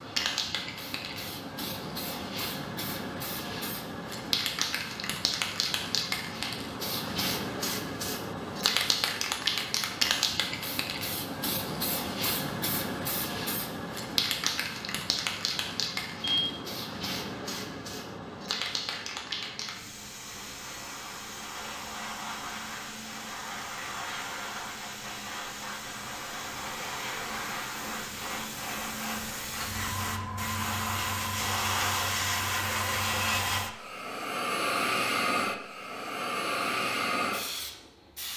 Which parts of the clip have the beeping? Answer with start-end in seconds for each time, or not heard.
16.2-16.8.